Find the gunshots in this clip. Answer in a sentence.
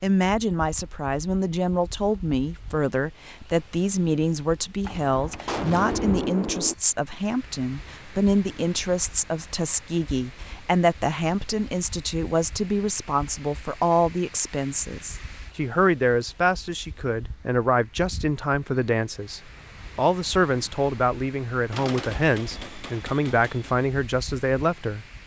You can hear the gunshots from 4.8 to 6.8 s and from 21.7 to 23.7 s.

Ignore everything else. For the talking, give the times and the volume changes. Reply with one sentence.
The talking can be heard from 0.0 to 25.1 s, at a steady volume.